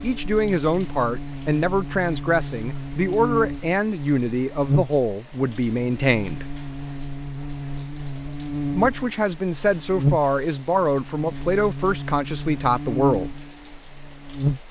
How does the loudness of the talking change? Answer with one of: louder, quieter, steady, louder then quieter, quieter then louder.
steady.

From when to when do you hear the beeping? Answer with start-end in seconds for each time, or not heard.
not heard.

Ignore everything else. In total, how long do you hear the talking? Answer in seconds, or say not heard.
11 s.